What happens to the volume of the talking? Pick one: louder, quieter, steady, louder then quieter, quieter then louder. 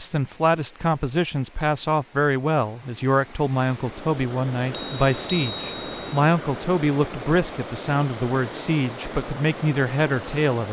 steady.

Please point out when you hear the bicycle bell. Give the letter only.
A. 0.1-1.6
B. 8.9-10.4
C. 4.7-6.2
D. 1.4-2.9
C.